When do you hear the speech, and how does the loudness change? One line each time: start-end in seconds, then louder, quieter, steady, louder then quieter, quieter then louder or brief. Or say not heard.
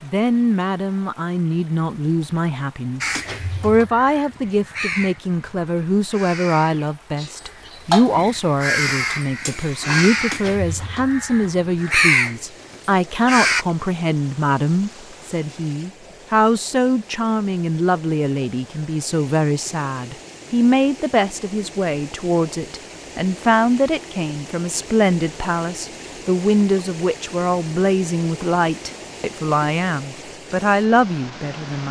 0.0-31.8 steady.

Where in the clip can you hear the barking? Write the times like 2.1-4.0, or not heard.
not heard.